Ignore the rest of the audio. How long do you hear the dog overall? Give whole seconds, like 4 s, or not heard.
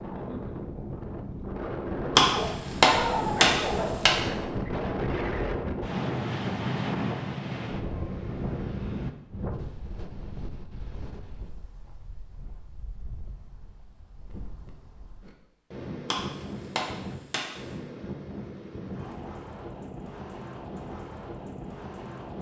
2 s.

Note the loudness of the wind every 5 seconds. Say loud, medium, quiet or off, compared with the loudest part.
loud, loud, quiet, medium, medium.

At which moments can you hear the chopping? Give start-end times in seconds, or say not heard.
2.1-4.2, 16.1-17.6.